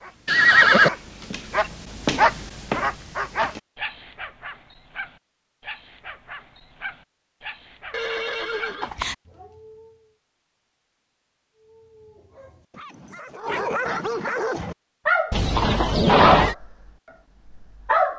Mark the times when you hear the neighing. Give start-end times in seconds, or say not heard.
0.2-0.9, 7.9-9.2, 15.3-16.6.